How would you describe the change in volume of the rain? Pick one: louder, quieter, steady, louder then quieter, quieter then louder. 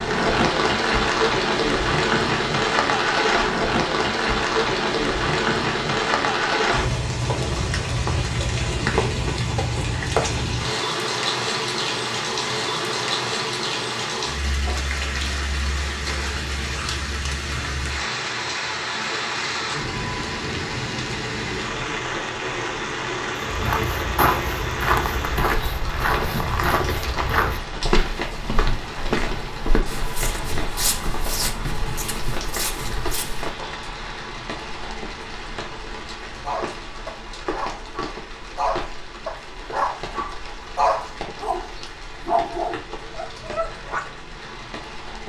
quieter.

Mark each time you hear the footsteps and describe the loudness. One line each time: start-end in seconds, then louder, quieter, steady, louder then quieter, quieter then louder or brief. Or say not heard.
23.4-33.5 quieter.